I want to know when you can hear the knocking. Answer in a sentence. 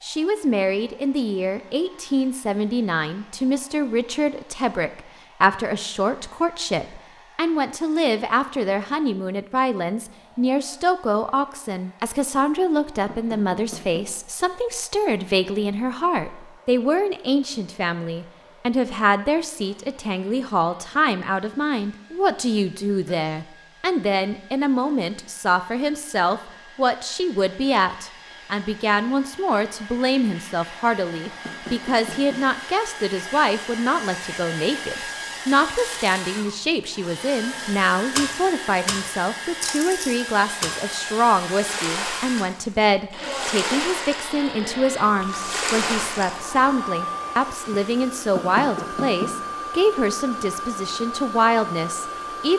You can hear the knocking from 13.1 to 14.1 s, from 31.4 to 32.5 s and from 48.4 to 49.4 s.